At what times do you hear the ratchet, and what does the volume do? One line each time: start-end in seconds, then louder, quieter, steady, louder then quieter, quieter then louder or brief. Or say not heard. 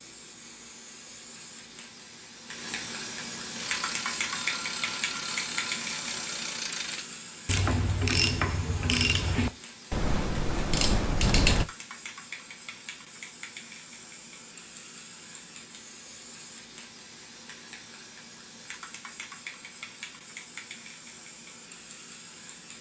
3.5-11.7 louder.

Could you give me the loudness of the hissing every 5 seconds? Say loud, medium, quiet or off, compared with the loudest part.
loud, loud, medium, medium, medium.